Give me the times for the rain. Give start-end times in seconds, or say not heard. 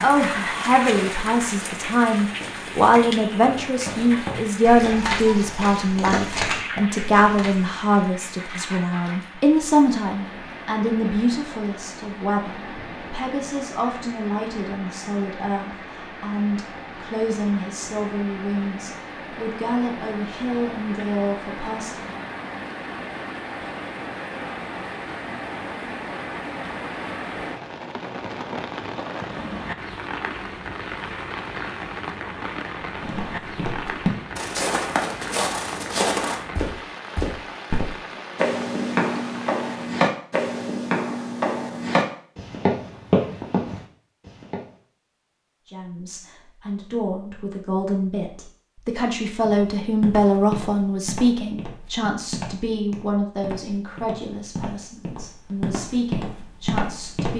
0.0-40.0.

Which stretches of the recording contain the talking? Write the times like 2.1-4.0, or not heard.
0.0-22.2, 45.6-57.3.